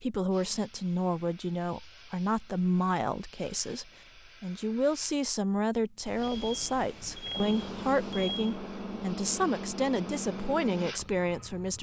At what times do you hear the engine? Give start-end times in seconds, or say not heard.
7.3-11.7.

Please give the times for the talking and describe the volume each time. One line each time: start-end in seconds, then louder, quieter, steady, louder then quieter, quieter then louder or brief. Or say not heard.
0.0-11.7 steady.